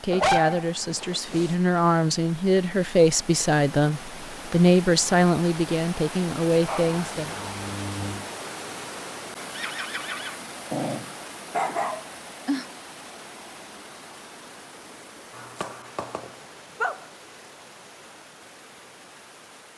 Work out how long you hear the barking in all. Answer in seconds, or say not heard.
7 s.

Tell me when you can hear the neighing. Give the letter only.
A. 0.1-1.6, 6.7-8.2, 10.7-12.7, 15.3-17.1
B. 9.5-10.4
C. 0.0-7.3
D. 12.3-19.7
B.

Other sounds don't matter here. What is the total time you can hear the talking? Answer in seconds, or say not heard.
7 s.